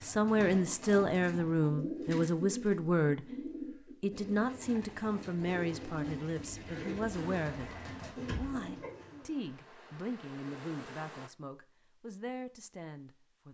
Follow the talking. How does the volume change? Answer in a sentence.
The loudness of the talking goes down.